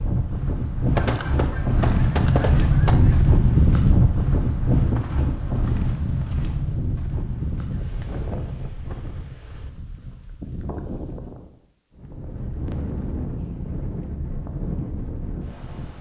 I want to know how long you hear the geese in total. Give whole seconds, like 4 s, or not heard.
2 s.